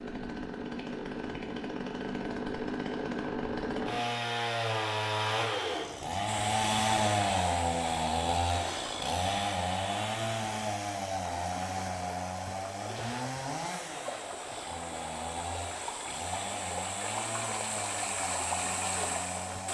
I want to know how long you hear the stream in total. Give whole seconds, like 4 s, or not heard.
13 s.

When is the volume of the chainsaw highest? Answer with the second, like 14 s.
7 s.